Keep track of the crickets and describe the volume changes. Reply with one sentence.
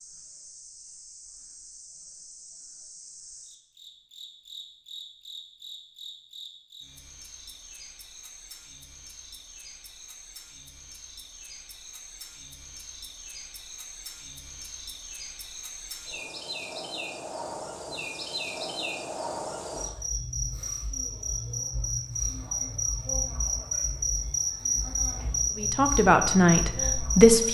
The loudness of the crickets goes up.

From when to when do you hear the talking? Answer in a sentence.
You can hear the talking from 25.6 to 27.4 s.